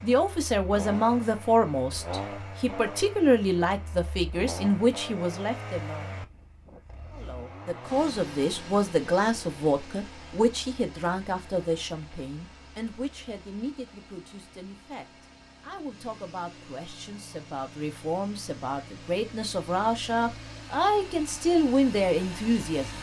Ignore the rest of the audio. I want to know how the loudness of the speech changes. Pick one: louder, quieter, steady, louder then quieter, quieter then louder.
quieter then louder.